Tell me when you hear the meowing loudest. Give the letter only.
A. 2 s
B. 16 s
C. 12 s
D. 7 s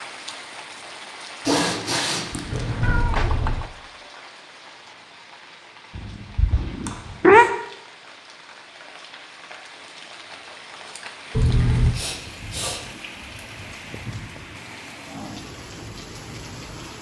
D.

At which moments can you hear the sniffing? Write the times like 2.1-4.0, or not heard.
1.4-3.0, 6.8-7.5, 11.9-12.8.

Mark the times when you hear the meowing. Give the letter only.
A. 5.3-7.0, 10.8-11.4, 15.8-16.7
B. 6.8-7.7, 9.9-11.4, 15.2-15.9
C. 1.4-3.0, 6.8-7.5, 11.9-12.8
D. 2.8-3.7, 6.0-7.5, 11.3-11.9
D.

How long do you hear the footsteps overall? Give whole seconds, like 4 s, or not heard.
not heard.